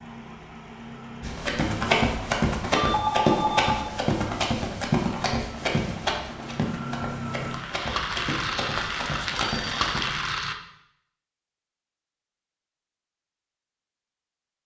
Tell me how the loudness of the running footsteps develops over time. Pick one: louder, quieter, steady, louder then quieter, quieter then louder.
quieter.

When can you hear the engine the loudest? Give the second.
10 s.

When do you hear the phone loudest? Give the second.
3 s.